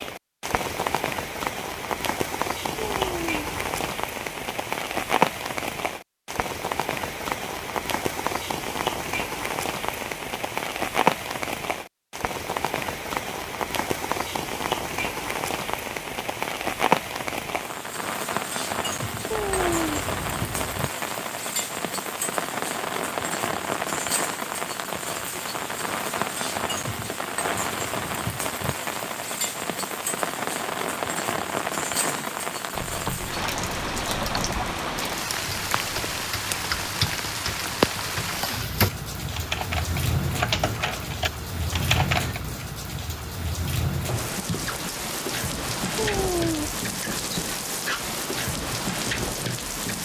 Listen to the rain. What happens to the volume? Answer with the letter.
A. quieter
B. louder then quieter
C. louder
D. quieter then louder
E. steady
E.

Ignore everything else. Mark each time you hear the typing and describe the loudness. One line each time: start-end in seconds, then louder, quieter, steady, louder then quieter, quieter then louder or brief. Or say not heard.
32.0-42.5 louder.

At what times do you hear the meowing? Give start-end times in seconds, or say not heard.
2.8-3.9, 19.3-20.9, 46.0-46.8.